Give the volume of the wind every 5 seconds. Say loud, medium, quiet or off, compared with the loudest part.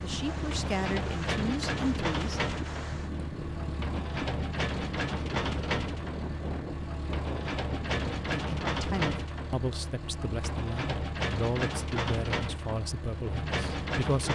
loud, loud, off.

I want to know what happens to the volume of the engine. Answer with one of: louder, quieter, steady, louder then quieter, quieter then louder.
steady.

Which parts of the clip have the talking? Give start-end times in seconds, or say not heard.
0.0-2.5, 8.3-14.2.